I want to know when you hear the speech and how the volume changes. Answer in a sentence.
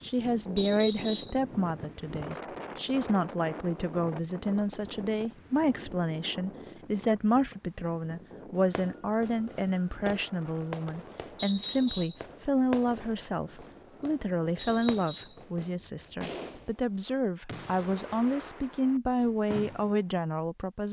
You can hear the speech from 0.0 to 20.8 s, at a steady volume.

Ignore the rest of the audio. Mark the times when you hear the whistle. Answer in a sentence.
You can hear the whistle from 0.6 to 1.4 s, from 11.3 to 12.2 s and from 14.6 to 15.4 s.